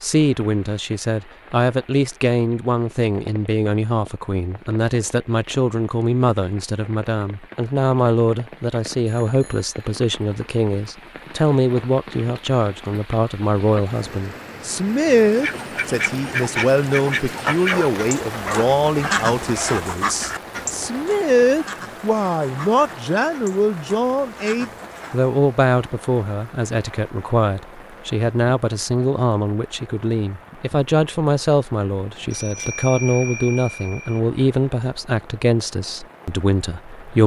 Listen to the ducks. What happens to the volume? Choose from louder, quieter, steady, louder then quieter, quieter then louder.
quieter.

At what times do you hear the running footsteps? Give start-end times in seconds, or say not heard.
not heard.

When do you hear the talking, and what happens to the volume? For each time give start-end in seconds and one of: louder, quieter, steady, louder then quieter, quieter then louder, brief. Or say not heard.
0.0-37.2 steady.